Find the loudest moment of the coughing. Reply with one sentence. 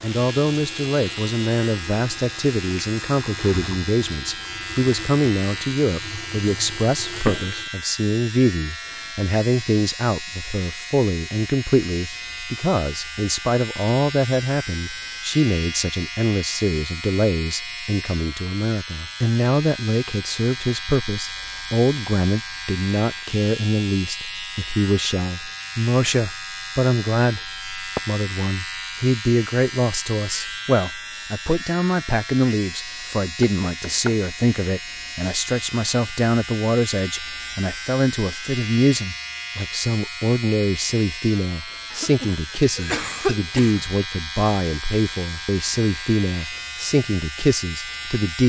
The volume of the coughing peaks at 43 seconds.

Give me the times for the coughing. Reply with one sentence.
The coughing can be heard from 41.9 to 43.9 s.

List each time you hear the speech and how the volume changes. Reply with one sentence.
The speech can be heard from 0.0 to 48.4 s, at a steady volume.